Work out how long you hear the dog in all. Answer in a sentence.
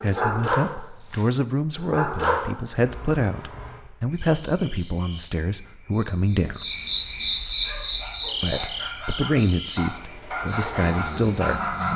You can hear the dog for 7 seconds altogether.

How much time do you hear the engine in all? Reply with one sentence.
The engine can be heard for 2 seconds in total.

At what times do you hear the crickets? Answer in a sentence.
You can hear the crickets from 2.8 to 11.9 s.